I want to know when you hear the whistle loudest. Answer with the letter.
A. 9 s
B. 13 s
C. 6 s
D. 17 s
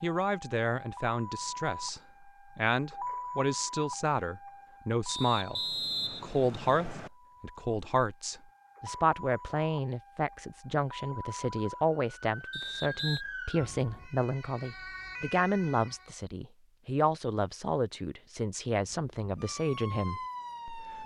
C.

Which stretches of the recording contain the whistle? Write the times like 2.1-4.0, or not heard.
5.0-7.1, 12.5-13.2.